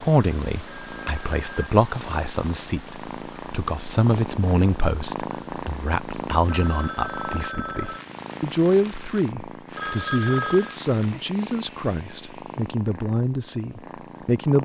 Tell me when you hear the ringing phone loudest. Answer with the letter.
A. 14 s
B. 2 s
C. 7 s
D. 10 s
D.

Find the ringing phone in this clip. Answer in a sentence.
You can hear the ringing phone from 0.7 to 1.7 s, from 6.5 to 8.1 s and from 9.8 to 10.8 s.